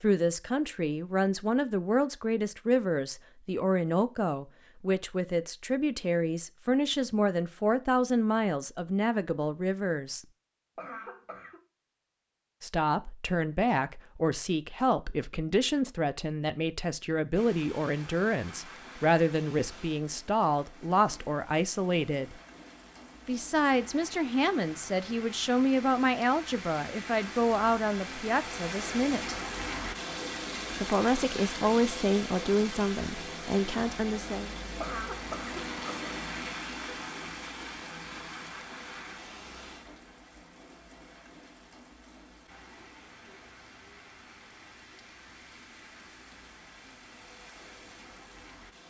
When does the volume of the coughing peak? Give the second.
35 s.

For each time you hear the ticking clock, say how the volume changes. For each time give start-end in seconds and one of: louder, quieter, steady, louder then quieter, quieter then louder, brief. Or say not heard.
not heard.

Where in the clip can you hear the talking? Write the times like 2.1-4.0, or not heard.
0.0-10.2, 12.6-22.4, 23.2-29.4, 30.8-34.5.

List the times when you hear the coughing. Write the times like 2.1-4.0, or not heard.
10.8-11.6, 34.8-36.1.